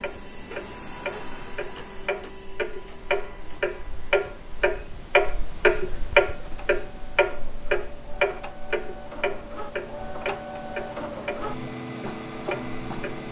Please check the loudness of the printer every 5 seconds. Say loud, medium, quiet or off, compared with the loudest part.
medium, medium, loud.